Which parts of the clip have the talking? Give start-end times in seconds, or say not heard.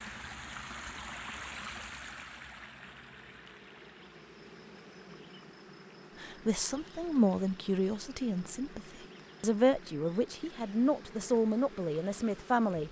6.2-12.8.